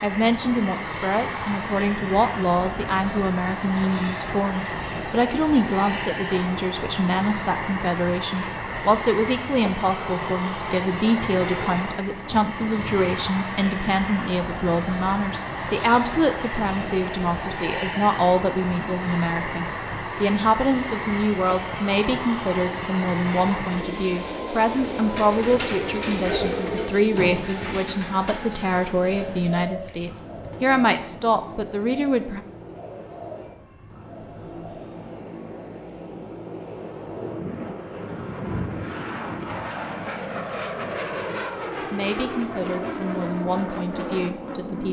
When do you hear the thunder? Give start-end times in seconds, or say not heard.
12.1-13.2, 37.1-39.8.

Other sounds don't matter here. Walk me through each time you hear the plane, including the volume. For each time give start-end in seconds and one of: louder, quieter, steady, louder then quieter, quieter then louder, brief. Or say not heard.
0.0-44.8 quieter then louder.